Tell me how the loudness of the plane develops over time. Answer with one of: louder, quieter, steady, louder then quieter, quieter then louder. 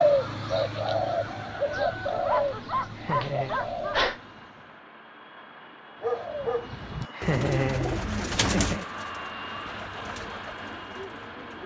louder.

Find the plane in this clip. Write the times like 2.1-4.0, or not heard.
4.0-11.6.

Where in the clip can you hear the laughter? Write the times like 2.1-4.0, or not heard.
2.8-3.5, 7.0-8.8.